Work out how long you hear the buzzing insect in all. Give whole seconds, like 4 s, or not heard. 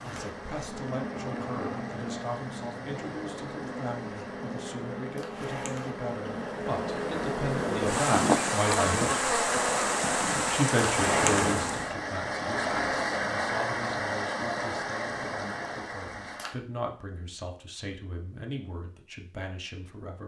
12 s.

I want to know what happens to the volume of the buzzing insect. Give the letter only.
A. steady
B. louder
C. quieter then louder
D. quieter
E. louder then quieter
B.